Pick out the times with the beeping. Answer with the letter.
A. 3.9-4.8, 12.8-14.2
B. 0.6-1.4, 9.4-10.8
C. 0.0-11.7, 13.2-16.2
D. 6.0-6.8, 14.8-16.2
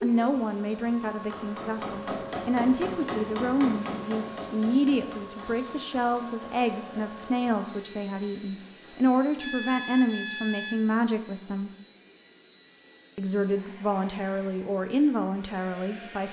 B.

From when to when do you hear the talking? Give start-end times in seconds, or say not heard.
0.0-11.7, 13.2-16.2.